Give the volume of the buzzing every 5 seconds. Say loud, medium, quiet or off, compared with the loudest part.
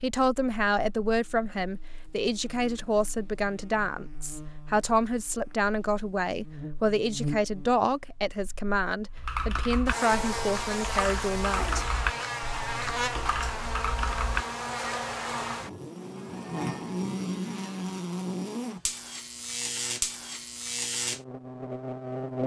quiet, medium, loud, loud, loud.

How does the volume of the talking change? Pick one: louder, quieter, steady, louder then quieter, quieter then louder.
steady.